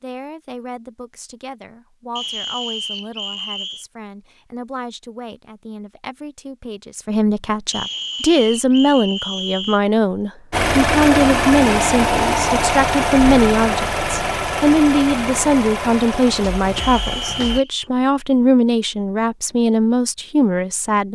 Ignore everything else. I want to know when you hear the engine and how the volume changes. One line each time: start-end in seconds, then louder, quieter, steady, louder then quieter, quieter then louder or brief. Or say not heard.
10.5-17.6 quieter.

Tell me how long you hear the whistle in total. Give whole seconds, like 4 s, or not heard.
5 s.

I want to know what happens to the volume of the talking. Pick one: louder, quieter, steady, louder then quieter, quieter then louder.
louder.